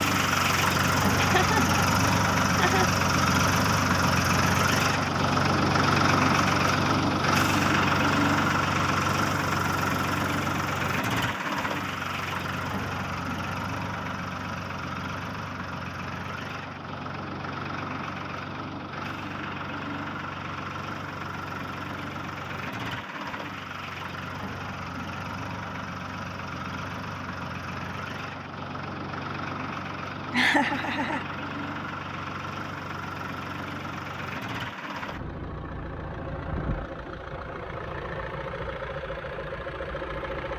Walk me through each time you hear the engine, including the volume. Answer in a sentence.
You can hear the engine from 0.0 to 40.5 s, getting quieter.